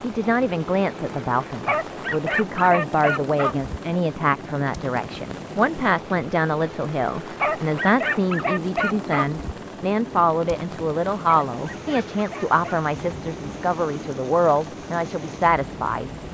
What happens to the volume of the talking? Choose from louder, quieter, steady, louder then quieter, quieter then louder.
steady.